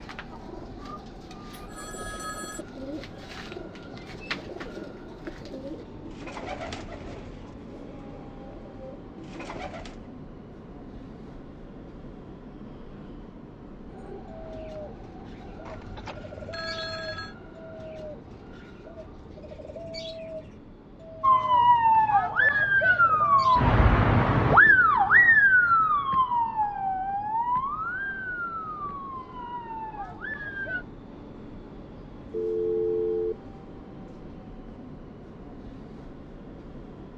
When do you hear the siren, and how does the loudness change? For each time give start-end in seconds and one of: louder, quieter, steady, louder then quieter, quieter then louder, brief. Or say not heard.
21.2-30.9 quieter.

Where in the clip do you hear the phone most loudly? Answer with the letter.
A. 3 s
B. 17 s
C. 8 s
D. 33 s
D.